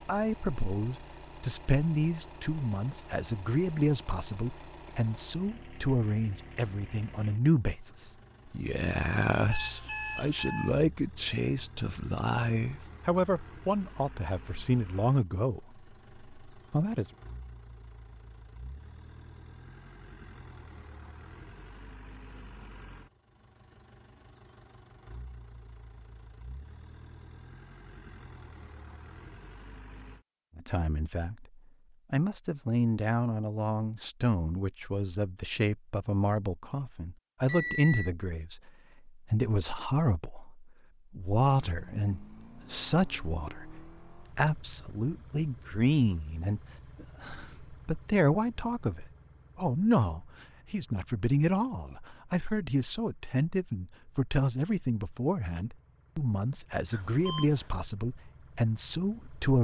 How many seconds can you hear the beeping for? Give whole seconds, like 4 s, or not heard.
3 s.